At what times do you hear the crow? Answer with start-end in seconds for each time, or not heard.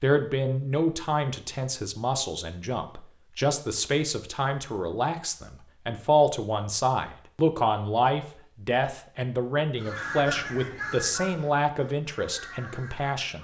9.8-13.3.